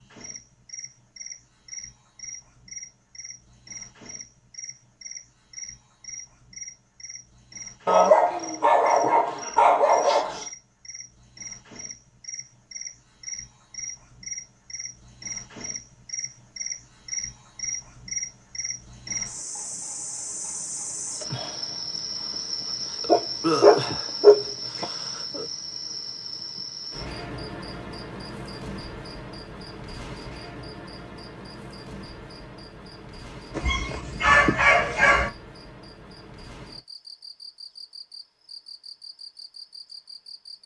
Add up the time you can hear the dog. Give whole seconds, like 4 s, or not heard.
6 s.